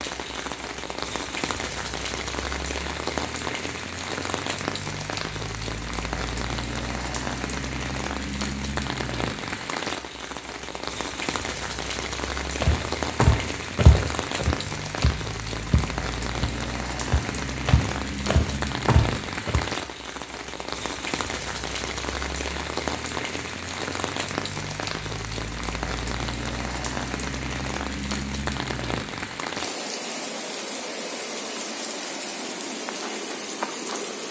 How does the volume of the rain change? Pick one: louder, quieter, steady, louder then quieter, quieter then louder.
steady.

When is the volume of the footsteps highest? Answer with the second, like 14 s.
14 s.